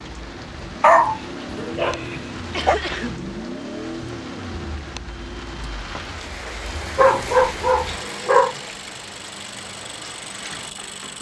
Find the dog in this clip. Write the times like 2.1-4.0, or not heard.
0.8-2.8, 7.0-8.6.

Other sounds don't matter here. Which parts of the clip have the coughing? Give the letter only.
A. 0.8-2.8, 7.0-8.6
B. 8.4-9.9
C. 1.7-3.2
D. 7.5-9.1
C.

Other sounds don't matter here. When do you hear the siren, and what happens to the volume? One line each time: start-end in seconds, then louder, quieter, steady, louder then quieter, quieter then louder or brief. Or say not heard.
not heard.